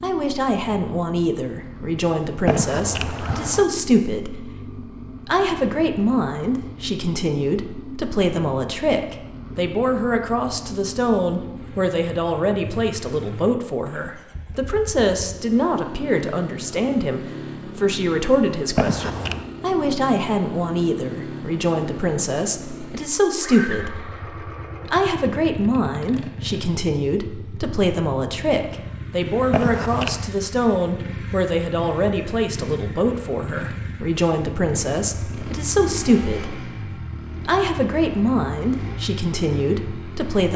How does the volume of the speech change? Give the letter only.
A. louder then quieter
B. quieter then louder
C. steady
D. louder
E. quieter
C.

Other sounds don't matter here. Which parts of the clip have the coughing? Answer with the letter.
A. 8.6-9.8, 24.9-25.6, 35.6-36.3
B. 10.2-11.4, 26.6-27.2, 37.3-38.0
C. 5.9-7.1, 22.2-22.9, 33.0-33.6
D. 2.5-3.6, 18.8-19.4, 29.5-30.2
D.